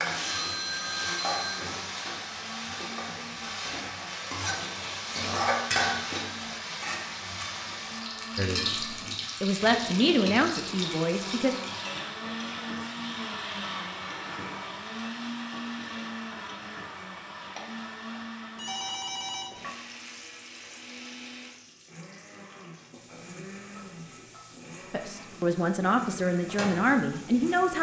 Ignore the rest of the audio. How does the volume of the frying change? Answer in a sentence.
The loudness of the frying goes down.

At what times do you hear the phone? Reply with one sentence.
You can hear the phone from 0.2 to 1.6 s and from 18.6 to 19.6 s.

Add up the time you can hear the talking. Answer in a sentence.
The talking can be heard for 6 seconds in total.